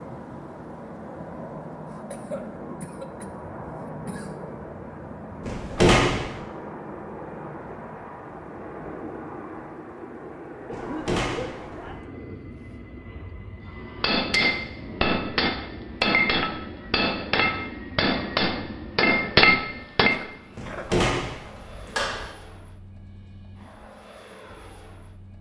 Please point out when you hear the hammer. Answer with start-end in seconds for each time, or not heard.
13.8-20.2.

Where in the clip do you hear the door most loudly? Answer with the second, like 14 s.
6 s.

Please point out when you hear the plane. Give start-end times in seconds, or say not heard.
0.0-25.3.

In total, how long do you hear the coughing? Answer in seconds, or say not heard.
5 s.